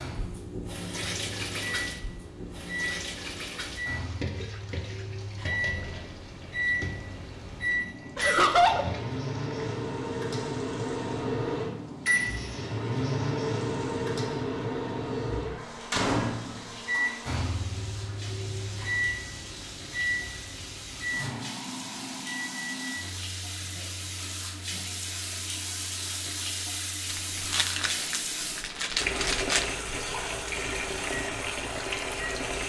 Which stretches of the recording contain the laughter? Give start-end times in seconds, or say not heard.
8.2-8.8, 23.6-24.8.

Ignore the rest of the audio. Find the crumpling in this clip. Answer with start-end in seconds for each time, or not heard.
27.1-29.6.